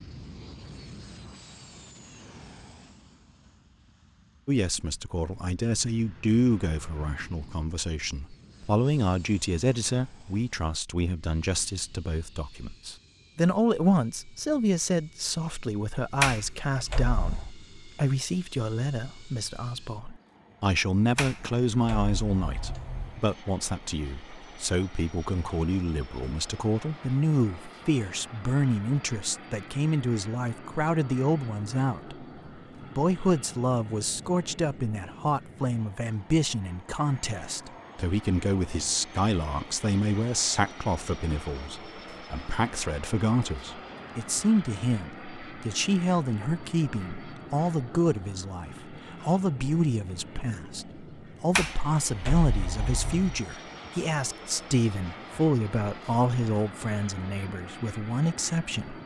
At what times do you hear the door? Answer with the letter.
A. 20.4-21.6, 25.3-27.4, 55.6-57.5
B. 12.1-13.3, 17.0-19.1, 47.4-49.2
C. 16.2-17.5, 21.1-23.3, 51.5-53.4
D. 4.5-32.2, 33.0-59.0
C.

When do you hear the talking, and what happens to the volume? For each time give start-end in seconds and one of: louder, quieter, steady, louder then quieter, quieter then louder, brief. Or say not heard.
4.5-32.2 steady
33.0-59.0 steady.